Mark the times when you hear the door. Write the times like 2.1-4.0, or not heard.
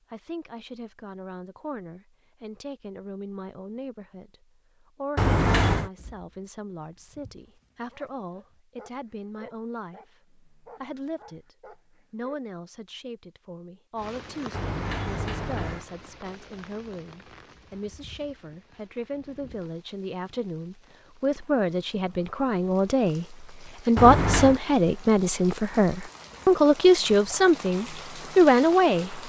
5.2-5.9, 14.5-15.8, 23.9-24.6.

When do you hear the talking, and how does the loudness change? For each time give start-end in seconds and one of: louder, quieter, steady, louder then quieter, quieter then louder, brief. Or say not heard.
0.1-29.2 louder.